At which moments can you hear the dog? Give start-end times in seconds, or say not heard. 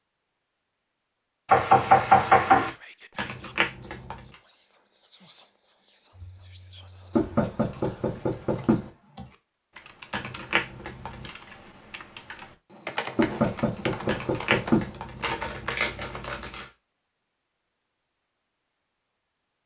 not heard.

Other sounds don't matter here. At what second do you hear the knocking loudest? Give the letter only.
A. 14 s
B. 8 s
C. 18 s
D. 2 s
D.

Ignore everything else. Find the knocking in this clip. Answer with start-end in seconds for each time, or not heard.
1.4-2.7, 7.2-8.8, 13.2-14.8.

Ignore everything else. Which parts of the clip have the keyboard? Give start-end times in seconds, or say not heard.
6.1-16.5.